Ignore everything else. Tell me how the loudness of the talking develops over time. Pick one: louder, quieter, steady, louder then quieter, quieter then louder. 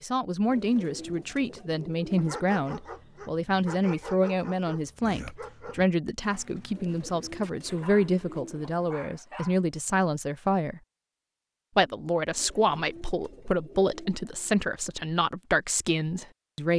steady.